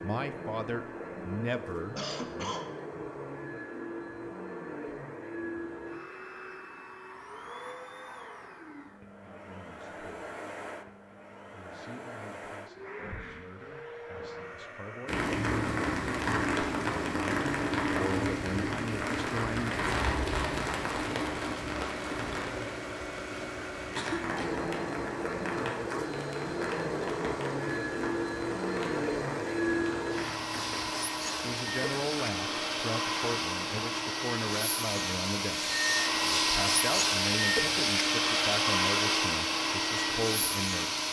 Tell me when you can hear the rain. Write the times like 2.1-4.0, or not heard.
15.1-41.0.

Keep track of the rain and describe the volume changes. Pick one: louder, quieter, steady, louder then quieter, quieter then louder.
quieter.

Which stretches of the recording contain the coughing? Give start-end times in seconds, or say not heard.
1.9-2.7, 23.9-24.6.